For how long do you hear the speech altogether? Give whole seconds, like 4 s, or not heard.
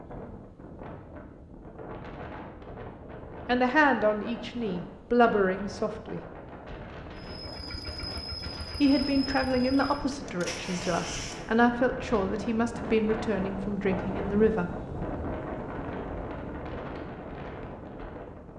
9 s.